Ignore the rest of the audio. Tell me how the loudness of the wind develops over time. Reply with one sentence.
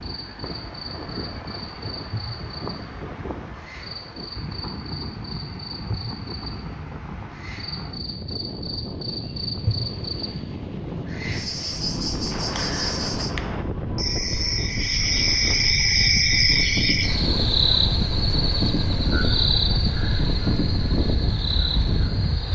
The loudness of the wind goes up.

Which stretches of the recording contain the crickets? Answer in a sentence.
The crickets can be heard from 0.0 to 22.4 s.